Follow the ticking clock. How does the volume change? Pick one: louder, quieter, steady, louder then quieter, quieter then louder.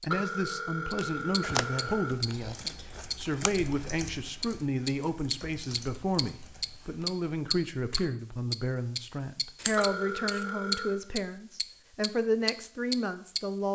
louder.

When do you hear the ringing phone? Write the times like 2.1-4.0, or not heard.
0.1-2.1, 9.8-11.0.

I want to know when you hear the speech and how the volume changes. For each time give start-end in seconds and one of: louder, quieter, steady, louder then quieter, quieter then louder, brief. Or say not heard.
0.0-13.6 steady.